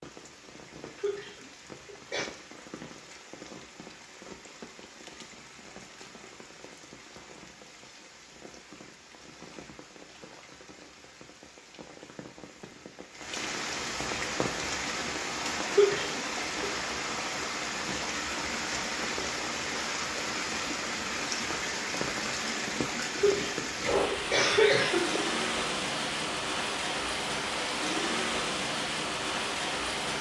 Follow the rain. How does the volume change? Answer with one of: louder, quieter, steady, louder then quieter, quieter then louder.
louder.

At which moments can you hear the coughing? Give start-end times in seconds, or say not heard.
0.9-2.3, 15.7-16.7, 23.1-25.2.